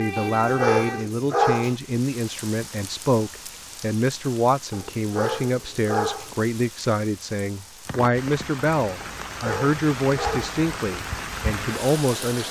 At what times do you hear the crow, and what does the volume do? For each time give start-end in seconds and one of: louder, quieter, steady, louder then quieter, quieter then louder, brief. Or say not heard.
not heard.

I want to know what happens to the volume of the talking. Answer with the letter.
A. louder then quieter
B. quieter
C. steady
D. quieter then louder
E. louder
C.